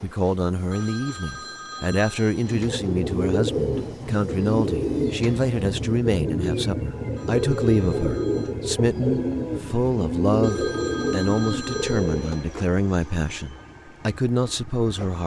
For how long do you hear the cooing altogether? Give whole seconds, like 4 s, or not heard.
10 s.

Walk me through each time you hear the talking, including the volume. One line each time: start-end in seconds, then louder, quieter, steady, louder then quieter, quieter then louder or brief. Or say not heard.
0.0-15.2 steady.